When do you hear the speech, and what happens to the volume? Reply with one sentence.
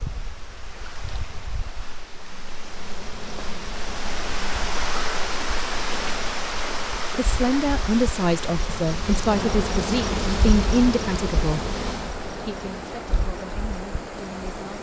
The speech can be heard from 7.2 to 14.7 s, getting quieter.